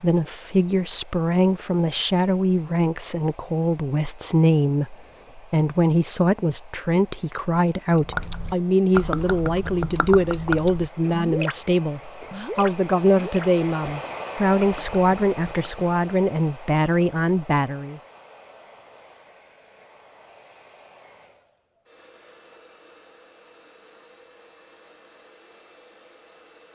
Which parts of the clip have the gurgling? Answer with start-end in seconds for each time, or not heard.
8.0-11.6, 12.2-15.7.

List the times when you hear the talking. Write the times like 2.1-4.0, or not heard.
0.0-18.0.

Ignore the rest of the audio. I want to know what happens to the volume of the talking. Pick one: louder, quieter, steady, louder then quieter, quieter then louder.
steady.